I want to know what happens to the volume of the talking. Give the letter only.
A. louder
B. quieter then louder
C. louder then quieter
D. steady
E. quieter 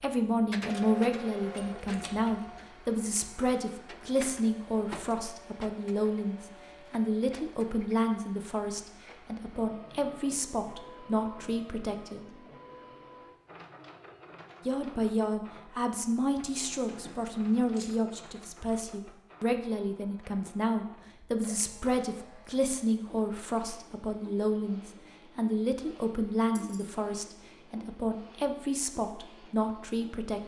D.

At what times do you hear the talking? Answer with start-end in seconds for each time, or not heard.
0.0-12.4, 14.7-30.4.